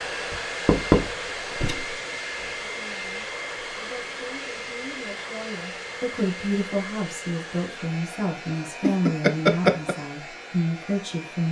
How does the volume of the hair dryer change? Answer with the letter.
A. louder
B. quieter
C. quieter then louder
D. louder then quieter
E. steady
B.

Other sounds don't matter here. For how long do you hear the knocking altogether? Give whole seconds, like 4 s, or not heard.
3 s.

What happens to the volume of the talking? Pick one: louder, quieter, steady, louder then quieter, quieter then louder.
louder.